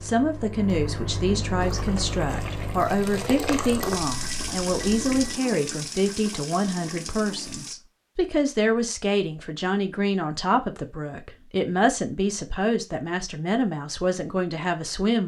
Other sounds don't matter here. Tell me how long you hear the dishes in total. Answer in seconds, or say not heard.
not heard.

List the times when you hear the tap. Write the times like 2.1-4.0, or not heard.
1.6-7.8.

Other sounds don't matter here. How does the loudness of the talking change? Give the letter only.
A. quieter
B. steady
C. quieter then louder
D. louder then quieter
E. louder
B.